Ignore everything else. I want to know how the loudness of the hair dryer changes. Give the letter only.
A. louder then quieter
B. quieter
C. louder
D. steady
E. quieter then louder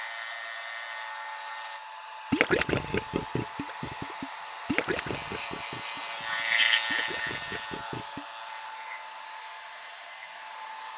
D.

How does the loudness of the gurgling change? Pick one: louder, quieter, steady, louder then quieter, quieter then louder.
quieter then louder.